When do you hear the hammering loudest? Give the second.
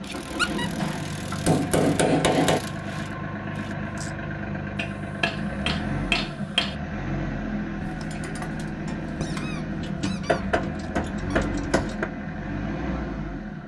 2 s.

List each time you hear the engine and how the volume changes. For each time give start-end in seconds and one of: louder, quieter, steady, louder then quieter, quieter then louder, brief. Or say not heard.
0.0-13.6 steady.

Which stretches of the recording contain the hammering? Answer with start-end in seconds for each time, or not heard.
0.8-2.6, 4.8-6.8, 10.1-12.1.